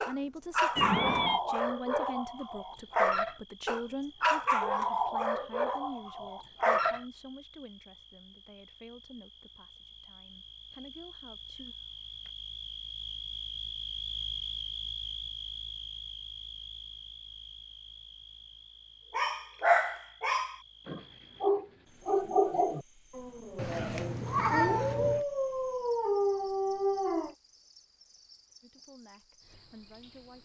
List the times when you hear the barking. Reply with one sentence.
You can hear the barking from 0.0 to 7.0 s and from 19.1 to 27.4 s.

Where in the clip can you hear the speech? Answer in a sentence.
You can hear the speech from 0.0 to 11.8 s and from 28.6 to 30.4 s.